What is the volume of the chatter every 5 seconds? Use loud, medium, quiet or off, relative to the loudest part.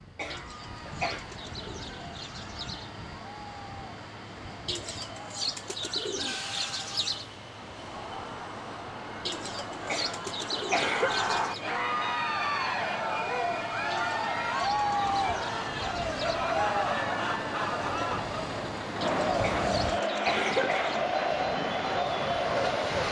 quiet, quiet, loud, loud, loud.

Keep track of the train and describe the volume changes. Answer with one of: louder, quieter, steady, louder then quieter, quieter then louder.
louder.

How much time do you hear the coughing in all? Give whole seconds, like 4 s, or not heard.
4 s.